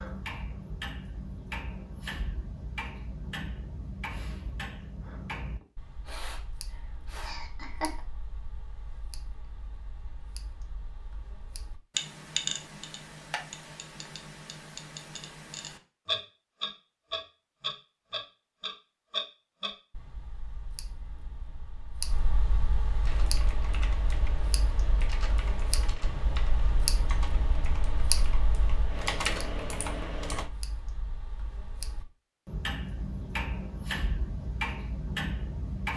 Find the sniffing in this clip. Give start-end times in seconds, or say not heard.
5.6-7.3.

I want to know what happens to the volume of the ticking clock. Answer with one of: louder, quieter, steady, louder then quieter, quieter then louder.
steady.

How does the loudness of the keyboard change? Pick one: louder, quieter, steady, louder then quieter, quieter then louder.
louder.